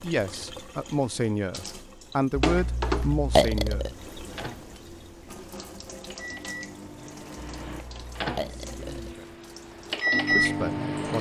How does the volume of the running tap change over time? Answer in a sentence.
The loudness of the running tap goes up, then down.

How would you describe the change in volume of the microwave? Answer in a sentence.
The loudness of the microwave goes up.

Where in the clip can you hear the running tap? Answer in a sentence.
You can hear the running tap from 0.0 to 11.1 s.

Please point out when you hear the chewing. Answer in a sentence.
You can't hear the chewing here.